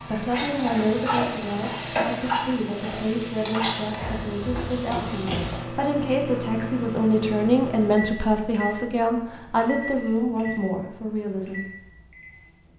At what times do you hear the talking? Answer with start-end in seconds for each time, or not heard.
0.0-11.7.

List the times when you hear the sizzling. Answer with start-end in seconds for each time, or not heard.
0.0-5.7.